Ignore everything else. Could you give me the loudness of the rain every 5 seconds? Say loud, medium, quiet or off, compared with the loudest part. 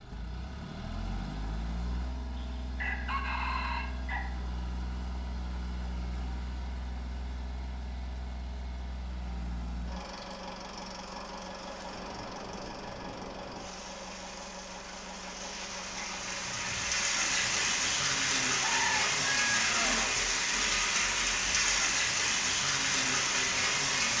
off, off, quiet, loud, loud.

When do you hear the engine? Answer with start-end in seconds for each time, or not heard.
0.0-24.1.